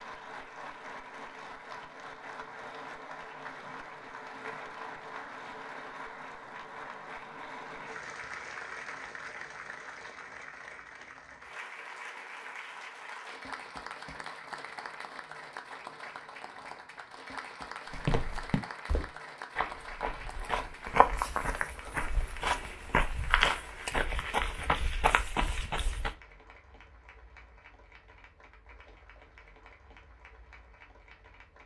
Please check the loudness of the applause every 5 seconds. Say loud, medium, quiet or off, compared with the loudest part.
loud, loud, loud, loud, medium, quiet, quiet.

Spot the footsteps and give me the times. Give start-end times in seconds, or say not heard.
17.9-26.1.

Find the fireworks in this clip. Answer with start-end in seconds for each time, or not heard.
not heard.